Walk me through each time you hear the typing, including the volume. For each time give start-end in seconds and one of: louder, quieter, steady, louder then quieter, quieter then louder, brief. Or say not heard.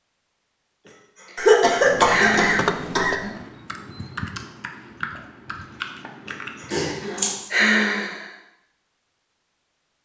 1.8-6.7 quieter.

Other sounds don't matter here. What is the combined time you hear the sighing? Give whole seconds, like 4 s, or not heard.
4 s.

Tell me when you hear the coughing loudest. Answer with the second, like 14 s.
2 s.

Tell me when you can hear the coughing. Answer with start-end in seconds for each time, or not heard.
1.4-3.1, 6.7-7.4.